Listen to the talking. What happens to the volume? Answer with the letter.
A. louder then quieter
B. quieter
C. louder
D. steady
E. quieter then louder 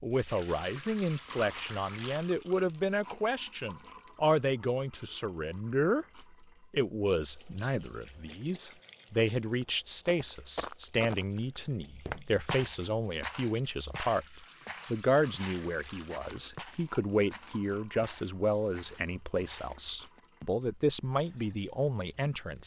D.